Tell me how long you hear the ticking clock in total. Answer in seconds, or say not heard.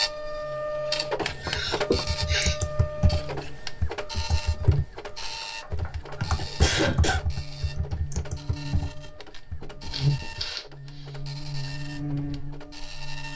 not heard.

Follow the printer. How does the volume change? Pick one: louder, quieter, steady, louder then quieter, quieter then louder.
quieter.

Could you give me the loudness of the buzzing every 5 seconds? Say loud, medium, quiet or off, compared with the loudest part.
medium, medium, loud.